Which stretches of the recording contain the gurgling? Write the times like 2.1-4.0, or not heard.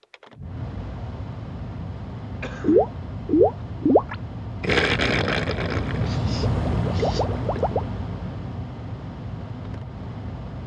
2.6-7.8.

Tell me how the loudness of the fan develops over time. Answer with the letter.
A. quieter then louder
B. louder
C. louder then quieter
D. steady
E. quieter
C.